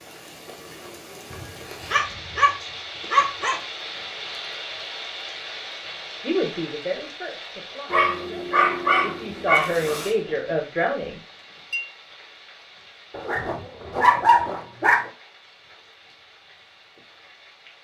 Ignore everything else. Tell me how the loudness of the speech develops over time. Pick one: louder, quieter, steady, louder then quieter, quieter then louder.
quieter then louder.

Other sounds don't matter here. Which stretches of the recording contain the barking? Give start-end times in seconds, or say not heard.
1.3-2.5, 3.1-3.5, 7.9-10.1, 13.1-15.1.